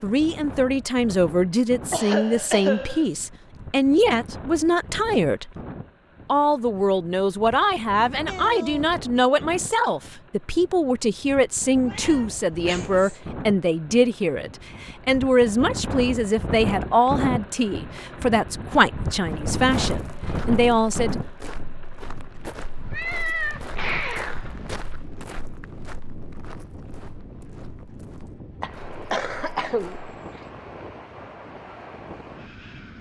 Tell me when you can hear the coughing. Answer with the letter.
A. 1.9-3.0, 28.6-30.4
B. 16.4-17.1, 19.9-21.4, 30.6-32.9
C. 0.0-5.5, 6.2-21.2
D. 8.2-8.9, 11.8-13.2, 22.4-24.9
A.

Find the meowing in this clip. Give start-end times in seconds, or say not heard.
8.2-8.9, 11.8-13.2, 22.4-24.9.